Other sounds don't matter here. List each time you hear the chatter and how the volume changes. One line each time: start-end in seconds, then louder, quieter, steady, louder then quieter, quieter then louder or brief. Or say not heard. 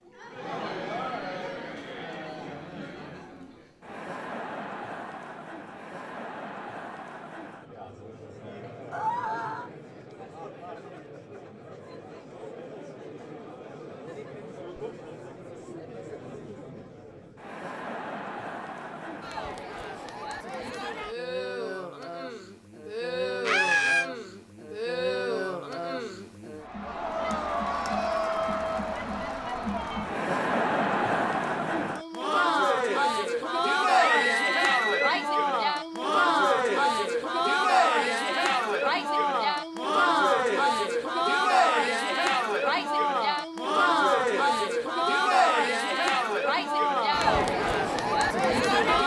0.1-49.0 louder.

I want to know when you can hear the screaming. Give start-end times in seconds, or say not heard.
8.9-9.7, 23.4-24.1, 34.0-35.3.